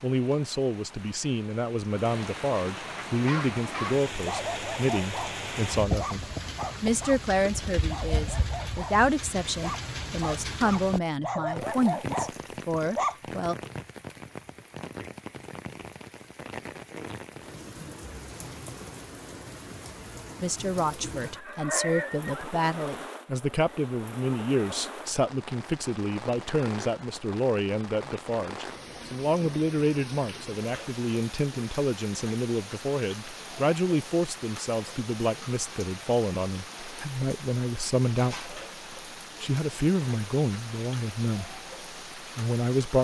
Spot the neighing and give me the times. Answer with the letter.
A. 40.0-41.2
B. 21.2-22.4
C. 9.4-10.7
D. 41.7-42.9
B.